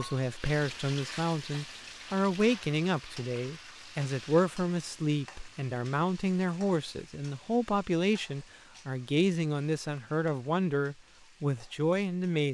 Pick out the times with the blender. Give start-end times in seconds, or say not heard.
not heard.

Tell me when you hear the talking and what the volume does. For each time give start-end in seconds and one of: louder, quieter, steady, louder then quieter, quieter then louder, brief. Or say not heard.
0.0-12.4 steady.